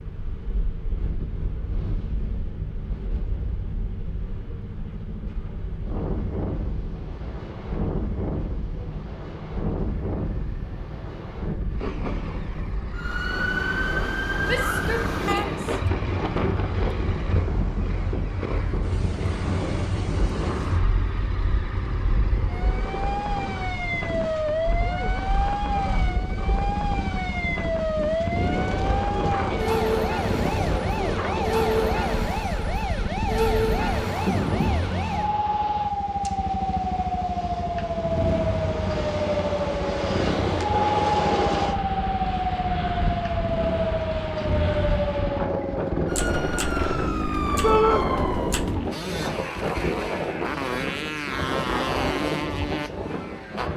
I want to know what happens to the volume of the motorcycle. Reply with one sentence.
The loudness of the motorcycle goes up.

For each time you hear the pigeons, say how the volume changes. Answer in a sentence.
The pigeons can't be heard in this clip.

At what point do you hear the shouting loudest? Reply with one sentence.
The volume of the shouting peaks at 48 seconds.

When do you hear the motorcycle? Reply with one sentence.
You can hear the motorcycle from 0.0 to 53.7 s.